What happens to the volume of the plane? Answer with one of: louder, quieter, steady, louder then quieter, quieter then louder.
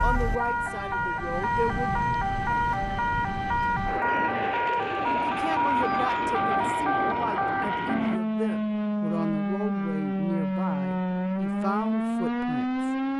louder.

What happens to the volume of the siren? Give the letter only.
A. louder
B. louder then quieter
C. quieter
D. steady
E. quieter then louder
D.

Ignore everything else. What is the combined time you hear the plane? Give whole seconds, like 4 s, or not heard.
8 s.